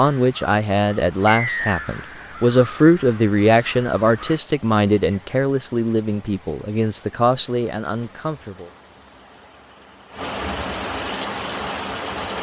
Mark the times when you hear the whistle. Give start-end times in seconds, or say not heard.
1.2-1.8.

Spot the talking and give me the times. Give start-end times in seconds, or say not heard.
0.0-8.7.